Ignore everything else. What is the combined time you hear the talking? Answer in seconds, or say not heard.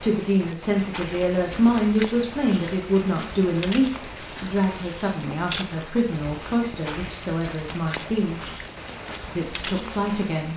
10 s.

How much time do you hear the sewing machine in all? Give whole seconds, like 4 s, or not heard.
not heard.